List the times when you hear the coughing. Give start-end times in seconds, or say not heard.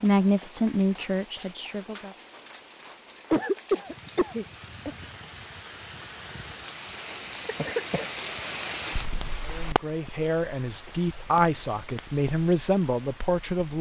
3.3-5.0, 7.5-8.1.